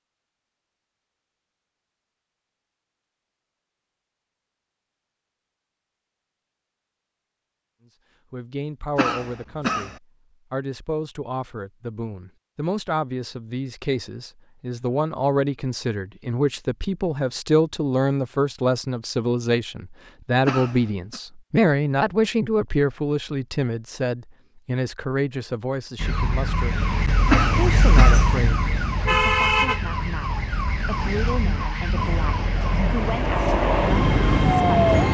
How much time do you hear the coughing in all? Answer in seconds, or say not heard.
3 s.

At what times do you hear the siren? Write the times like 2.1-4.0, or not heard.
25.9-34.9.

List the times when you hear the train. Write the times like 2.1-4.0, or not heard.
31.9-35.1.